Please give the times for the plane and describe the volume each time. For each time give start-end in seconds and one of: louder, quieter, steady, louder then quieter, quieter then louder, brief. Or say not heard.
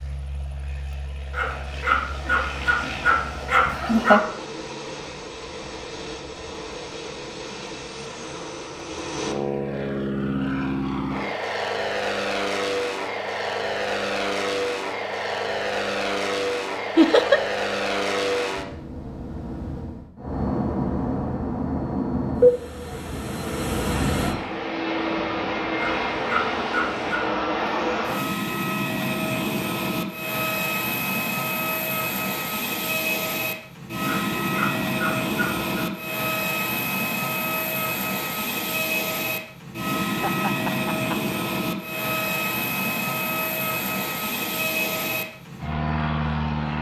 0.0-46.7 louder.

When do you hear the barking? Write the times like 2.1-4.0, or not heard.
1.3-4.2, 25.8-27.2, 34.0-35.6.